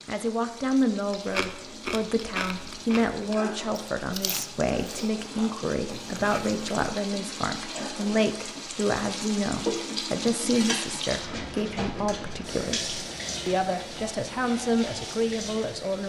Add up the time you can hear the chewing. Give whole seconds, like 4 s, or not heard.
6 s.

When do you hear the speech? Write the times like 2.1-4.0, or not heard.
0.1-16.0.